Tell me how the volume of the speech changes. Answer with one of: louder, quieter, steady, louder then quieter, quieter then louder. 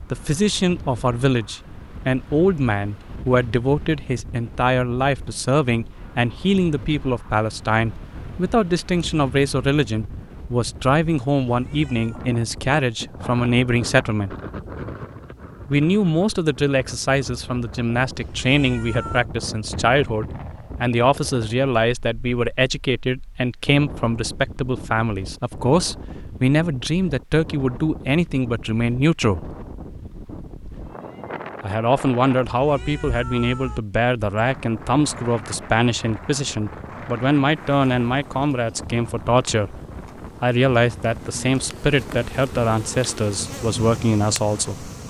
steady.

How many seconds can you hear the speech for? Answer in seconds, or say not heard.
41 s.